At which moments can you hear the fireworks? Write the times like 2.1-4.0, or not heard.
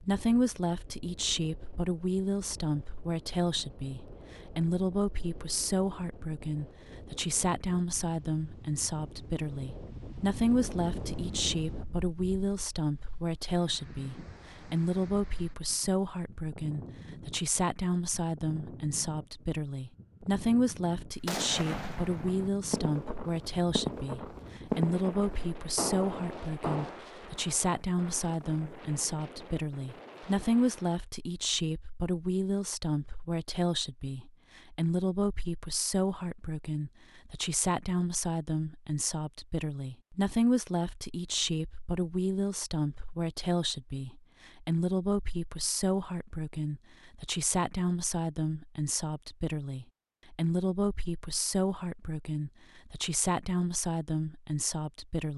21.2-27.0.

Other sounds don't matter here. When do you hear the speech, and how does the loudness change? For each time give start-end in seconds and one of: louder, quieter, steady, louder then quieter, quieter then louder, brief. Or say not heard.
0.0-55.3 steady.